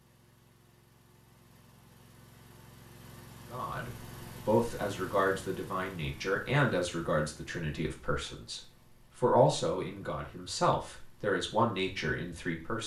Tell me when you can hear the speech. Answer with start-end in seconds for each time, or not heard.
3.5-12.8.